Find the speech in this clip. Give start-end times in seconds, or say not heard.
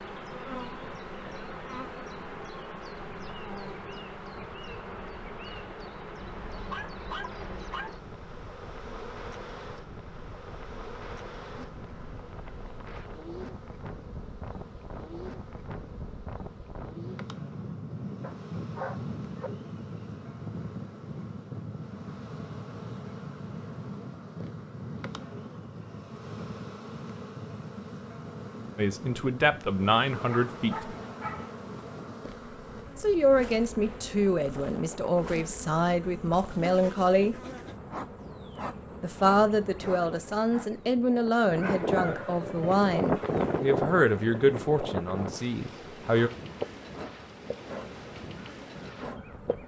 28.8-30.9, 33.0-37.4, 39.0-46.3.